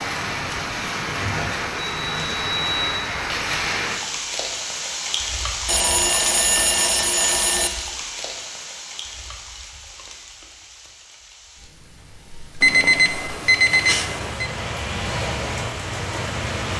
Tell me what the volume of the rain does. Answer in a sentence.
The volume of the rain goes down, then up.